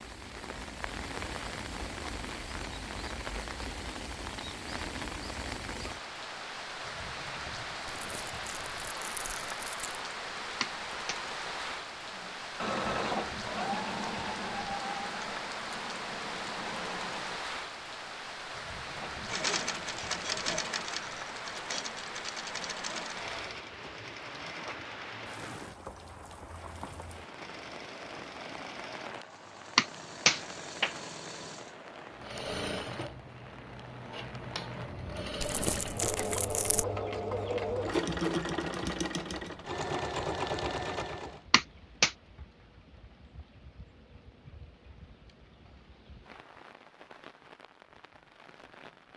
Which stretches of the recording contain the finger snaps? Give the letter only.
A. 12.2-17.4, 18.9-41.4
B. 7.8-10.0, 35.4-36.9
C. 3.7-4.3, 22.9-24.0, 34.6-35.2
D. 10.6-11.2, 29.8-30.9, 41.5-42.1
D.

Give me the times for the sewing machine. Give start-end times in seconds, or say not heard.
12.2-17.4, 18.9-41.4.